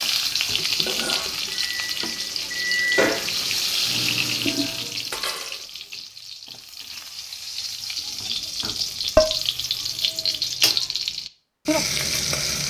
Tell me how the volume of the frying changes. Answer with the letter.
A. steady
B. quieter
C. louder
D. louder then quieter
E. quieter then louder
E.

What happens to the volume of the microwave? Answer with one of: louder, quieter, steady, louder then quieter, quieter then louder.
louder then quieter.